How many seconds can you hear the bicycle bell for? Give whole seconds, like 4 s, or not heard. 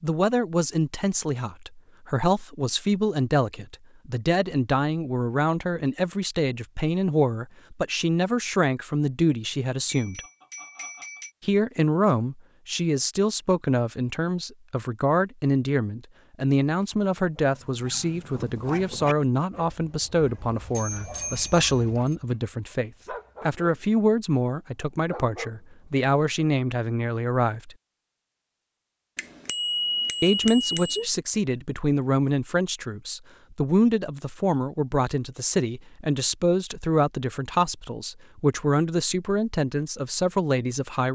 5 s.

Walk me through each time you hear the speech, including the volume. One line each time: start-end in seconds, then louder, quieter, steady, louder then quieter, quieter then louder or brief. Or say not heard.
0.0-10.2 steady
11.4-27.8 steady
30.2-41.1 steady.